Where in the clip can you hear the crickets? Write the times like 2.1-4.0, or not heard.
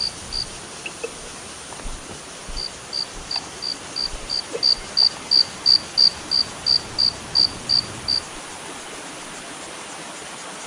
0.0-8.2.